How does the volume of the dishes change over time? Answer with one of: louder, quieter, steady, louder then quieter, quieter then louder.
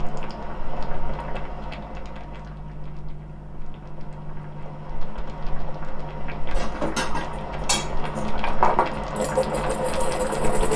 louder then quieter.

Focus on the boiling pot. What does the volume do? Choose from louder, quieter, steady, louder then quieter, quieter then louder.
quieter then louder.